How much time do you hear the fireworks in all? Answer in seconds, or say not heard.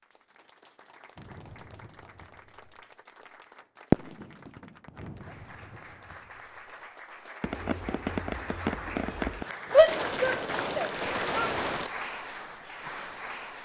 9 s.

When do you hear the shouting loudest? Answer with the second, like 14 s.
10 s.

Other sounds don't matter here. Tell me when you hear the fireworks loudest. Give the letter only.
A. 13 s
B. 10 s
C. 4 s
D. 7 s
C.